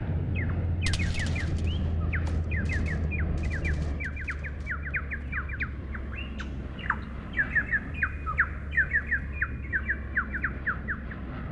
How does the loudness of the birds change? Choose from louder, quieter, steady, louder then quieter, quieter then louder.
louder.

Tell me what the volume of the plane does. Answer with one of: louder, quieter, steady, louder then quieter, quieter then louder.
quieter.